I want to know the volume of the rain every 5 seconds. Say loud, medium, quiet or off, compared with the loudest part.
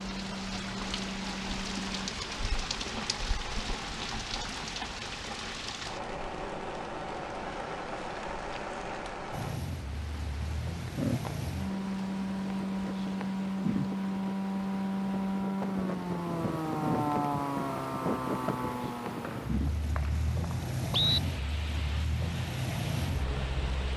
loud, loud, loud, medium, medium.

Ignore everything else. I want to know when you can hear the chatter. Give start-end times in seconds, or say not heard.
not heard.